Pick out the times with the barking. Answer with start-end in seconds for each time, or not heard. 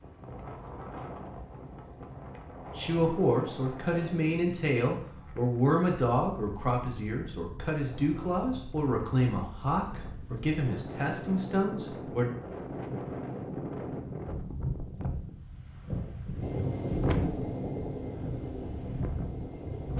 not heard.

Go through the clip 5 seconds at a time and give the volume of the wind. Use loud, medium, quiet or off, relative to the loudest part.
medium, medium, loud, loud.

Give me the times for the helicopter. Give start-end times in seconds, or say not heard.
16.4-19.9.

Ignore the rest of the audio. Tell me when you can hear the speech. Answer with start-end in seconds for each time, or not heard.
2.8-12.3.